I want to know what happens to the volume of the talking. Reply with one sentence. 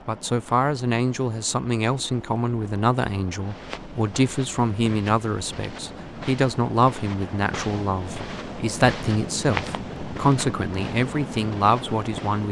The loudness of the talking stays about the same.